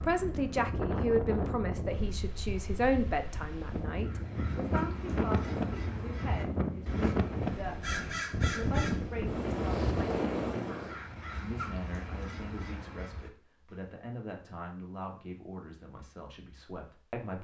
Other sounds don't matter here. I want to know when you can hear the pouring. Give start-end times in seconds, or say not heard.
not heard.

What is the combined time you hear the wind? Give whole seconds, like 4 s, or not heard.
11 s.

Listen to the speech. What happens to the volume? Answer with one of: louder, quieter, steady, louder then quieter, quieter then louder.
quieter.